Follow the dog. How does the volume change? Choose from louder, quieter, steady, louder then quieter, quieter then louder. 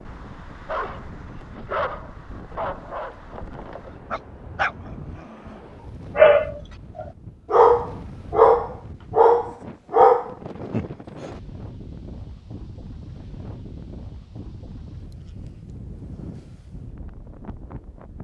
louder.